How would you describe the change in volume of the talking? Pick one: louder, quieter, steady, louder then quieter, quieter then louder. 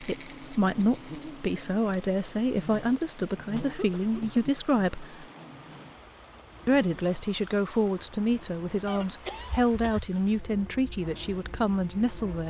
steady.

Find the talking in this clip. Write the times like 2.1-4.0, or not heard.
0.0-5.2, 6.7-12.4.